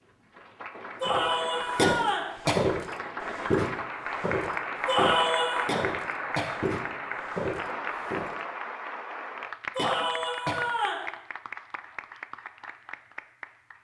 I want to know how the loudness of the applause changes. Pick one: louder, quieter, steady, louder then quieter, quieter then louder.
louder then quieter.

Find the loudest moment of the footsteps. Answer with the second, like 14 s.
3 s.